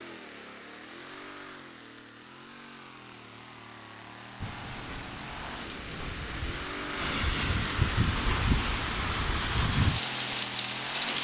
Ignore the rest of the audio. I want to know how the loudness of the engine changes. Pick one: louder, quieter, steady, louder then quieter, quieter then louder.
louder.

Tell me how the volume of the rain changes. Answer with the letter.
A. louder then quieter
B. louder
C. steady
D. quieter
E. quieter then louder
B.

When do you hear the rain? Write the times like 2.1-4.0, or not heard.
4.4-11.1.